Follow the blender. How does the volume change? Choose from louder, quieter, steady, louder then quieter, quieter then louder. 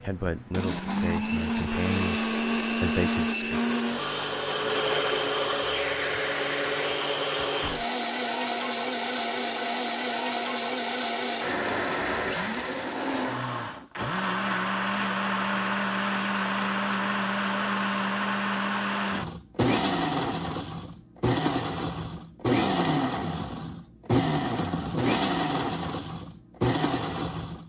steady.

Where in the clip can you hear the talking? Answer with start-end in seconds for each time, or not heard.
0.0-3.8.